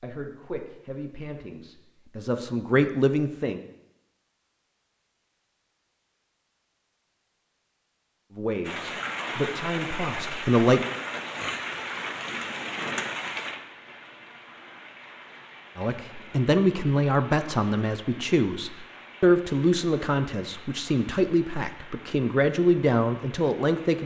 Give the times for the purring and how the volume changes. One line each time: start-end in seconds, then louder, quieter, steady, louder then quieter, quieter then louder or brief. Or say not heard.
not heard.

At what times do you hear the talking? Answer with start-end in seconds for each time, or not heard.
0.0-3.6, 8.3-10.8, 15.8-24.0.